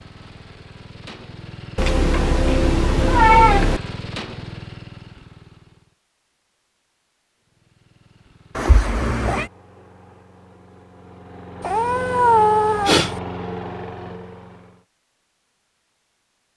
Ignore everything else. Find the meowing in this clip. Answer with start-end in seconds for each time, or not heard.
1.8-3.8, 8.6-9.5, 11.6-13.2.